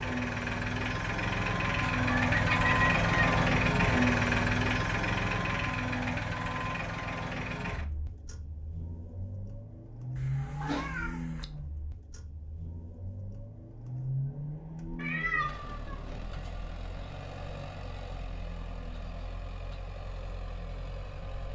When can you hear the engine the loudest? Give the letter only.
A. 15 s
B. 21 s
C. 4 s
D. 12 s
C.